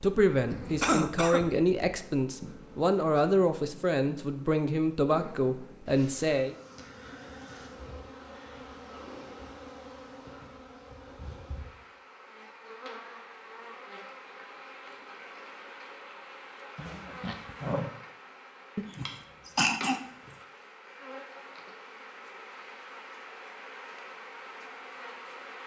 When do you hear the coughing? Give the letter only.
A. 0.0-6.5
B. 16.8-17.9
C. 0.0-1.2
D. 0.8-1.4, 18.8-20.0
D.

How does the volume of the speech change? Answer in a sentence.
The loudness of the speech stays about the same.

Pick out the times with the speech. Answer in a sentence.
You can hear the speech from 0.0 to 6.5 s.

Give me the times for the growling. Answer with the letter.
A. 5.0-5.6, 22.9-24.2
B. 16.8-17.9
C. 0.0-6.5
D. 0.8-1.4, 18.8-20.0
B.